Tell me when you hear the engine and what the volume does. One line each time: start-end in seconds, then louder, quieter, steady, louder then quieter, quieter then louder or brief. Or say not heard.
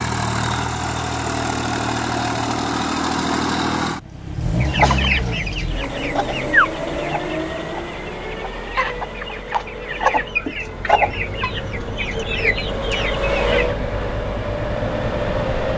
0.0-15.7 quieter then louder.